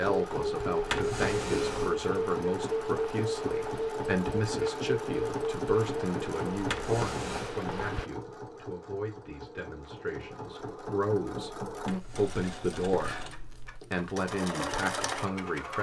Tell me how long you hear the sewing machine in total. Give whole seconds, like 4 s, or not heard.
16 s.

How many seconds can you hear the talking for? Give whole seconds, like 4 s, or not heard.
16 s.